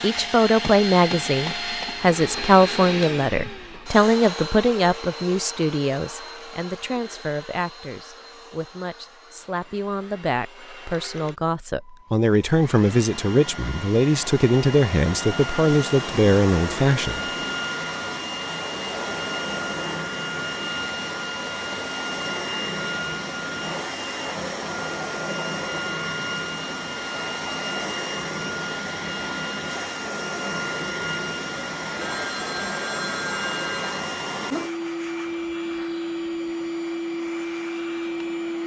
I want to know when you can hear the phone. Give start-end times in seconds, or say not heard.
32.0-34.0.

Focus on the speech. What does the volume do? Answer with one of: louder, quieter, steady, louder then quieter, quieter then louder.
quieter then louder.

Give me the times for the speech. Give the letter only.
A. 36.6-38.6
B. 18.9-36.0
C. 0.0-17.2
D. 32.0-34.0
C.